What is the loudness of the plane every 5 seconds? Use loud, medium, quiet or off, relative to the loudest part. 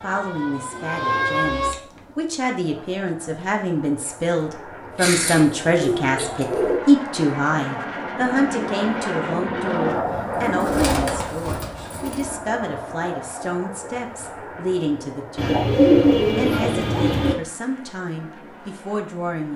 quiet, loud, loud, quiet.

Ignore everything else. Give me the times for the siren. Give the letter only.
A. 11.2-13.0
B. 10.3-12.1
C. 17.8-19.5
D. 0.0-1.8
D.